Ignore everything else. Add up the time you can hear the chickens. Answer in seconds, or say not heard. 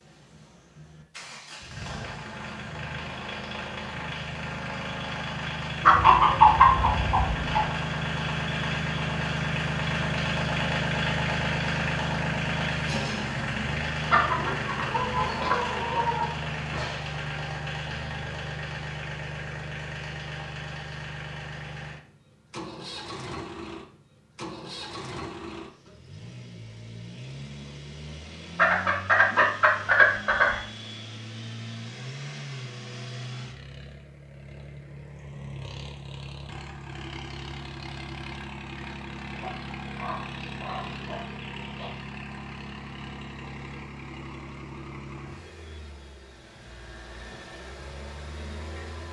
9 s.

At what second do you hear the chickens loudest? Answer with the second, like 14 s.
7 s.